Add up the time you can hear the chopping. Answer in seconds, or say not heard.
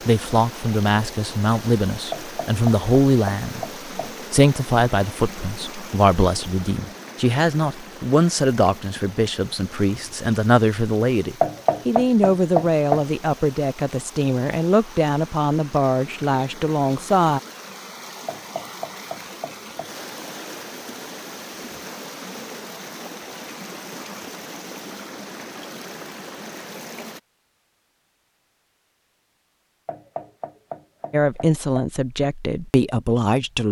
7 s.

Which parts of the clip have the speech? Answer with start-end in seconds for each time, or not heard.
0.1-3.6, 4.3-17.4, 31.1-33.6.